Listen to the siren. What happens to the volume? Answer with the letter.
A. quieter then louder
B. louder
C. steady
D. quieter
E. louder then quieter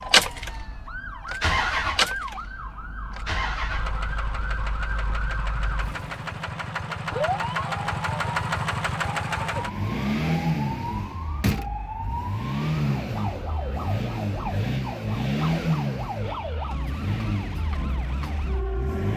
C.